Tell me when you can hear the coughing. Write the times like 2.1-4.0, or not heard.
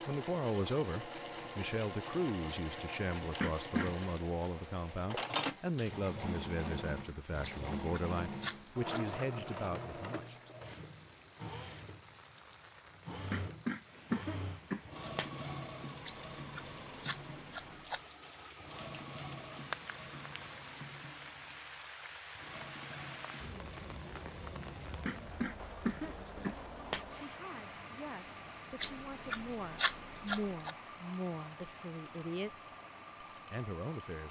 3.4-4.0, 13.3-15.3, 25.1-27.1.